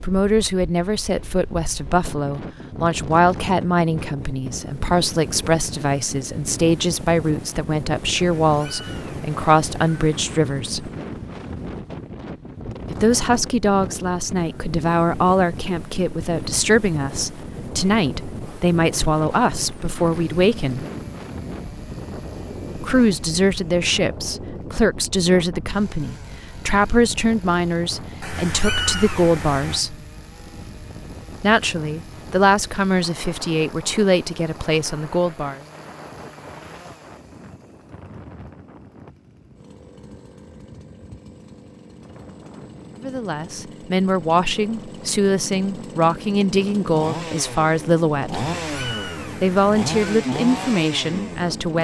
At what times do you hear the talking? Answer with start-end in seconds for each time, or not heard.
0.0-10.9, 12.9-20.9, 22.8-29.9, 31.4-35.6, 43.0-48.5, 49.4-51.7.